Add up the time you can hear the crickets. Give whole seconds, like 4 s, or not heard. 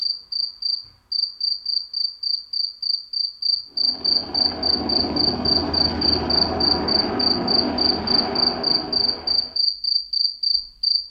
11 s.